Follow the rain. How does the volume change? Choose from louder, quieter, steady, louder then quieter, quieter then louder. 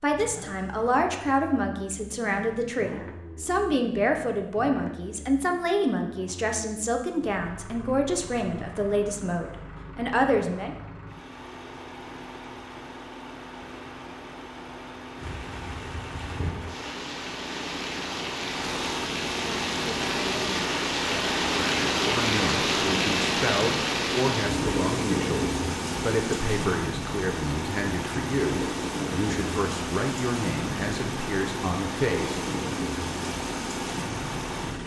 louder then quieter.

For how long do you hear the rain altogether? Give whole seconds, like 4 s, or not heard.
20 s.